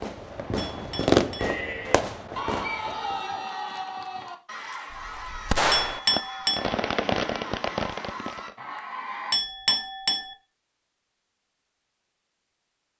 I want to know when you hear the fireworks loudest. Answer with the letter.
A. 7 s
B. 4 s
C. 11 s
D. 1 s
D.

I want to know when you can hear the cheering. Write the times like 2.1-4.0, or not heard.
1.4-9.3.